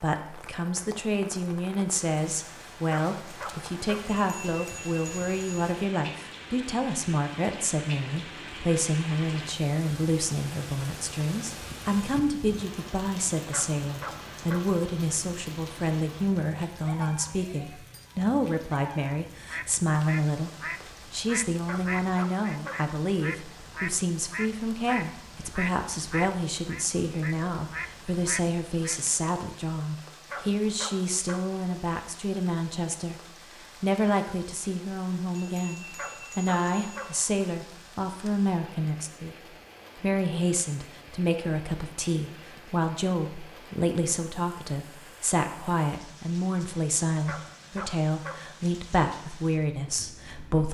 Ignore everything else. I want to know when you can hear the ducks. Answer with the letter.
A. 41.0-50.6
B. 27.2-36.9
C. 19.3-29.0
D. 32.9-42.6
C.